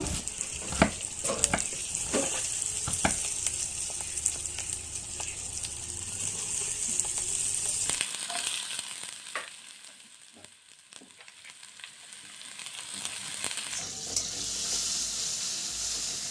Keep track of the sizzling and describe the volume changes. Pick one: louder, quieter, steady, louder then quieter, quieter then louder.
quieter then louder.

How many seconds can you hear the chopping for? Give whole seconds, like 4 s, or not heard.
3 s.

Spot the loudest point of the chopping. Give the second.
1 s.